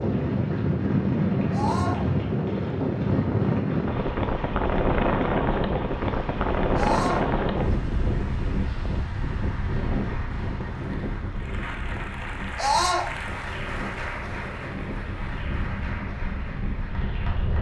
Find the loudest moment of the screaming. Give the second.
13 s.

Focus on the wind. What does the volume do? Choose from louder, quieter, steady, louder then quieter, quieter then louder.
quieter.